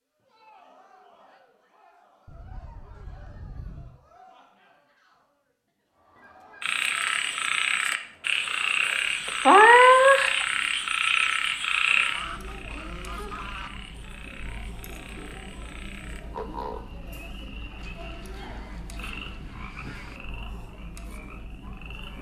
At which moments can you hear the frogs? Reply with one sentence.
The frogs can be heard from 6.6 to 22.1 s.